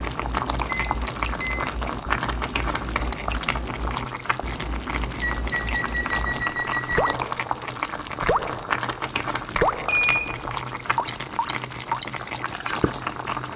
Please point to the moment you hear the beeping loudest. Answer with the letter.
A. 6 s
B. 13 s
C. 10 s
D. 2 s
C.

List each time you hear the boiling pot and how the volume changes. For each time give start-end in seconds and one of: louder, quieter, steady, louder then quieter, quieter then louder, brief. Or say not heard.
0.0-13.5 steady.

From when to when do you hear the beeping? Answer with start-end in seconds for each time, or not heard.
0.7-1.7, 5.2-7.2, 9.8-10.5.